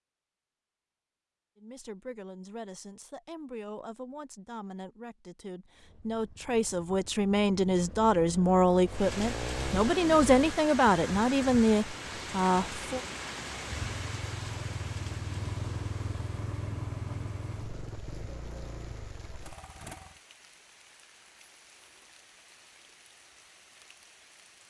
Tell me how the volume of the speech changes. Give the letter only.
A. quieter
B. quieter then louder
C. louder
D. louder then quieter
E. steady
C.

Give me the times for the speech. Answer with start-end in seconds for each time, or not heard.
1.6-13.0.